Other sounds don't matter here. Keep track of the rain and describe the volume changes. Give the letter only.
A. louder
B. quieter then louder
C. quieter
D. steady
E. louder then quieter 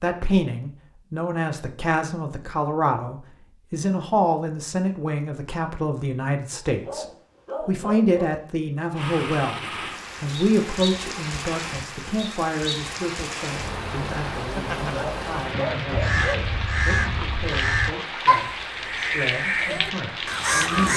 D.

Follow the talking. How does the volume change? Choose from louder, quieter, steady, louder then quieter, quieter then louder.
quieter.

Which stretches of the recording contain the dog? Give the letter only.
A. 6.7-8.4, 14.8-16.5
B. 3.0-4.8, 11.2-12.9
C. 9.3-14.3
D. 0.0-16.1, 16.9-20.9
A.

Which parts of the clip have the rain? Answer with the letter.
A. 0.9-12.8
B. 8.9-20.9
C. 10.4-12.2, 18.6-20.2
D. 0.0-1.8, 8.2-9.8
B.